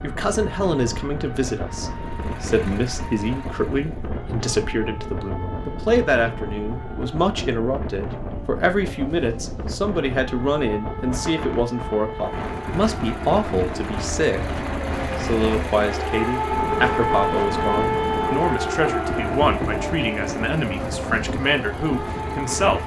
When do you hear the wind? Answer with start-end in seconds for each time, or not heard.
0.0-22.8.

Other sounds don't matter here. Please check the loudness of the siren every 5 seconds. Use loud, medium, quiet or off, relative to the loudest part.
quiet, quiet, medium, loud, medium.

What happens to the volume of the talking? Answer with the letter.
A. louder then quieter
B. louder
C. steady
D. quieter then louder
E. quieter
C.